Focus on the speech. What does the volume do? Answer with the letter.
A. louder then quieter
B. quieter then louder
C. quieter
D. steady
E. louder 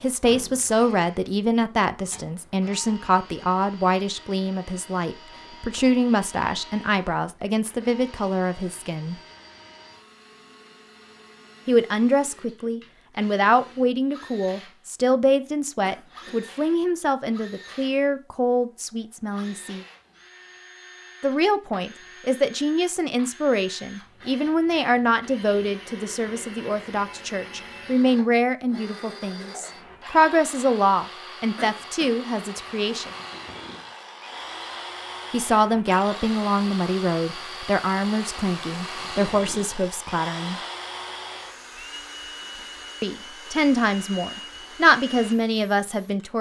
D.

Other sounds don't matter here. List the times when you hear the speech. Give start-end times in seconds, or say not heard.
0.0-9.2, 11.7-19.9, 21.2-33.1, 35.3-40.6, 43.0-46.3.